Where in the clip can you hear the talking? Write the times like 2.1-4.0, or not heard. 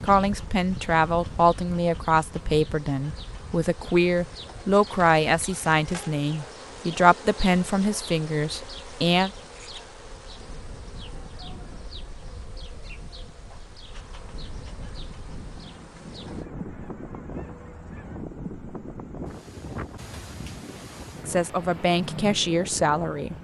0.0-9.3, 21.2-23.4.